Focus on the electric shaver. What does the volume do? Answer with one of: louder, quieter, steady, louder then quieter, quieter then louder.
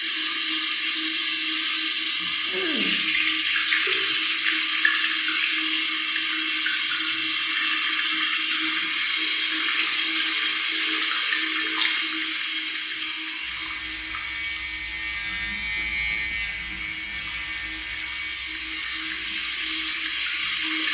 louder then quieter.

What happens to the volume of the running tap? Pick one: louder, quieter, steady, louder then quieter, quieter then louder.
quieter.